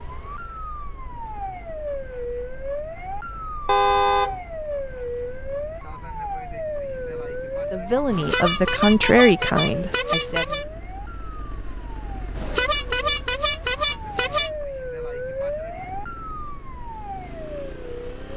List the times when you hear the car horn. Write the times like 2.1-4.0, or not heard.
3.6-4.3, 8.1-10.7, 12.3-14.5.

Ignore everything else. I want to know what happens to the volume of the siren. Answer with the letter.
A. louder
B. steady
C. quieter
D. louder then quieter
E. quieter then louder
E.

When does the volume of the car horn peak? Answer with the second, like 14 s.
4 s.